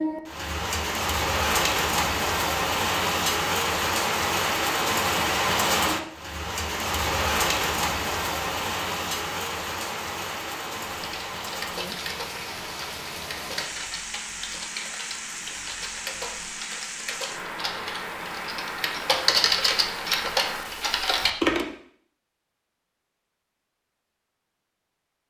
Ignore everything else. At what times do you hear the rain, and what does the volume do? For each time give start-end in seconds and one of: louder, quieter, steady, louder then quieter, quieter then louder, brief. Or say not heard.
0.0-20.9 quieter.